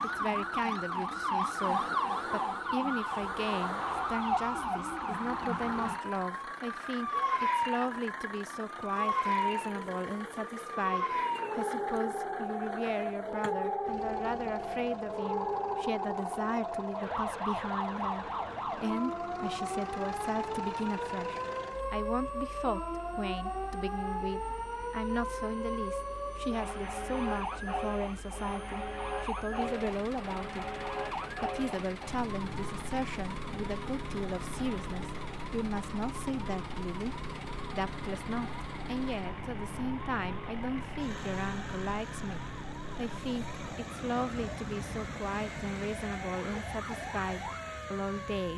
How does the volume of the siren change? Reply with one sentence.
The volume of the siren goes down.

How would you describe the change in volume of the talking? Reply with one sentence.
The loudness of the talking stays about the same.